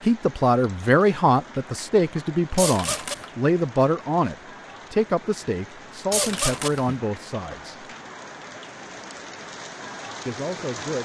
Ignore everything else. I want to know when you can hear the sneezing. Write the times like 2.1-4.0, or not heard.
2.5-3.2, 6.1-7.0.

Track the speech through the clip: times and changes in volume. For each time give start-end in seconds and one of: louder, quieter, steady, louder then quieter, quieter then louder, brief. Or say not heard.
0.1-7.8 quieter
10.2-11.0 brief.